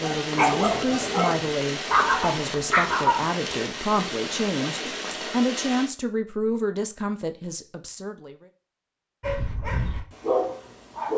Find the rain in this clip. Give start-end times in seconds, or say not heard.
0.0-5.9.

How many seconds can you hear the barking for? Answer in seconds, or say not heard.
5 s.